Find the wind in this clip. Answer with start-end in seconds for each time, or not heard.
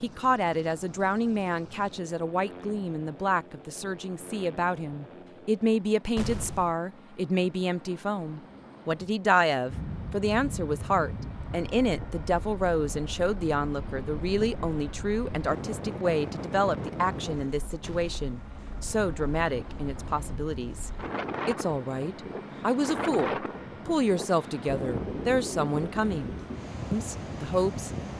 9.7-28.1.